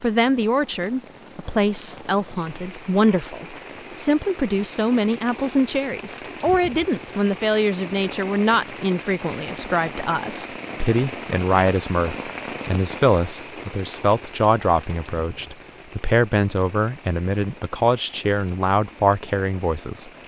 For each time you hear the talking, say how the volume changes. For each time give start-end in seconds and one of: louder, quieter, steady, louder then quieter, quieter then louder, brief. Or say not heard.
0.0-20.1 steady.